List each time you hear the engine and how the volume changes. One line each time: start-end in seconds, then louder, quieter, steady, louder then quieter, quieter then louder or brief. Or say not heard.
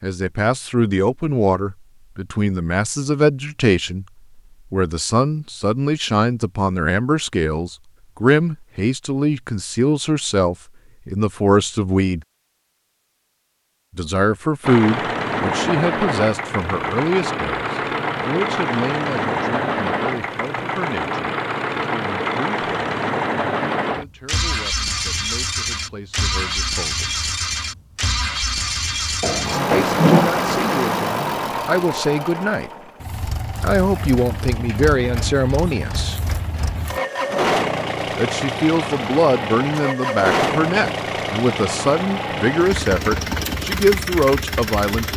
14.6-45.1 steady.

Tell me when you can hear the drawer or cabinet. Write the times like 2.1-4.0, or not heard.
29.2-30.3.